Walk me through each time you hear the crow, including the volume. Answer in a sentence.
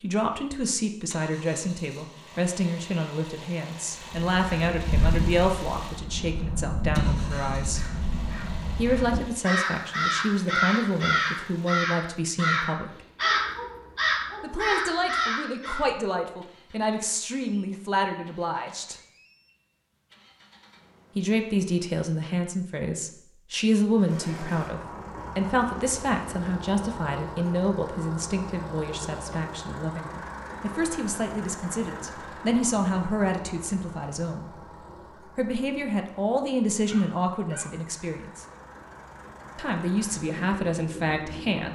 You can hear the crow from 4.0 to 15.8 s, getting louder.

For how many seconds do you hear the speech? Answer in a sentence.
You can hear the speech for 36 seconds altogether.